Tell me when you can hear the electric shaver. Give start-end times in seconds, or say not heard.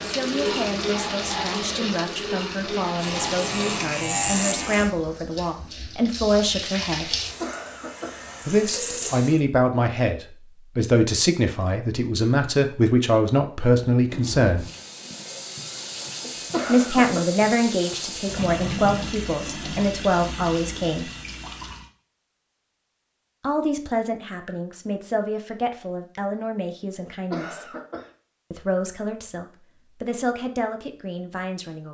3.0-4.9.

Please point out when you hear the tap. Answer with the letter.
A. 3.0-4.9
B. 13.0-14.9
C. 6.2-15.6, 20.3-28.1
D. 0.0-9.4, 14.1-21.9
D.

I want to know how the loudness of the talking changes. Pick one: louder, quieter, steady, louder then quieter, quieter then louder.
louder then quieter.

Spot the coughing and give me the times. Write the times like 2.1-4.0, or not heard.
7.1-8.2, 16.2-17.3, 27.0-28.1.